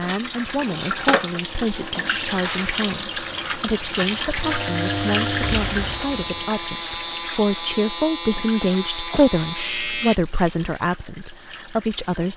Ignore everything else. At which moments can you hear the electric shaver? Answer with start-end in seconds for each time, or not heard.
4.4-10.2.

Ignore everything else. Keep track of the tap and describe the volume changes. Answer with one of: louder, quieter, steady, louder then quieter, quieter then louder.
quieter.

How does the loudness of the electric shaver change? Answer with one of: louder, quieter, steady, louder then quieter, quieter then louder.
steady.